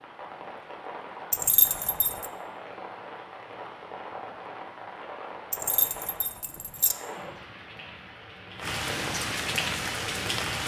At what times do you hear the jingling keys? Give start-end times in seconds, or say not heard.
1.3-2.2, 5.5-7.0.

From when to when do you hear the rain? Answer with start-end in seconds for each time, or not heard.
0.0-10.6.